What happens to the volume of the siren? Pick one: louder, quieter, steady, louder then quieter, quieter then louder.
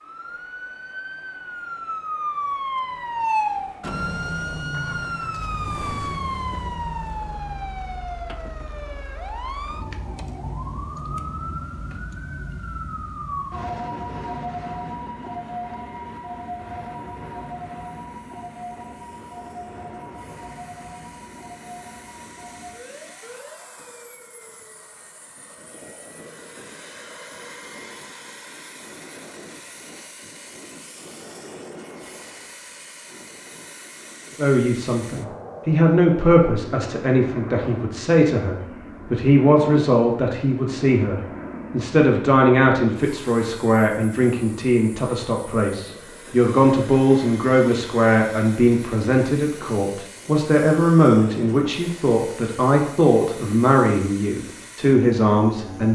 quieter.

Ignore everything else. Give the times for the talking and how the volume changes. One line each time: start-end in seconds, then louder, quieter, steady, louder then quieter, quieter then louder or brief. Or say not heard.
34.4-55.8 steady.